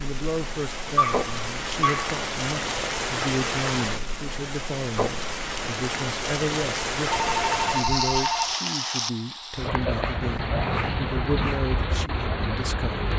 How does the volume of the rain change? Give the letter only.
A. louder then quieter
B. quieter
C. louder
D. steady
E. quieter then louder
D.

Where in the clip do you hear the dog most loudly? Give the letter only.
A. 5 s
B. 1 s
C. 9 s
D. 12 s
B.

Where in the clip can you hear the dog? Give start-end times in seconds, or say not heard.
0.9-2.1, 9.6-11.6.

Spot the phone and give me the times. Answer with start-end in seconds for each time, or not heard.
7.1-8.6.